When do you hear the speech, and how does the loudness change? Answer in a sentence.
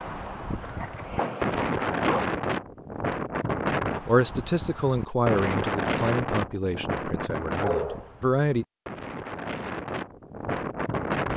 You can hear the speech from 4.0 to 8.7 s, getting quieter.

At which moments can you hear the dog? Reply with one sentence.
You can hear the dog from 0.6 to 2.2 s and from 7.1 to 8.1 s.